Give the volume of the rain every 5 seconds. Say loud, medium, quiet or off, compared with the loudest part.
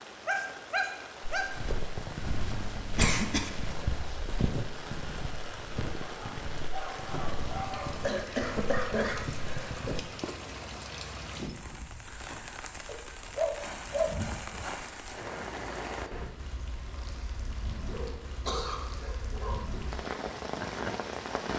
medium, medium, medium, medium, loud.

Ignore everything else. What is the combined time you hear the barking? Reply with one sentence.
You can hear the barking for 6 seconds altogether.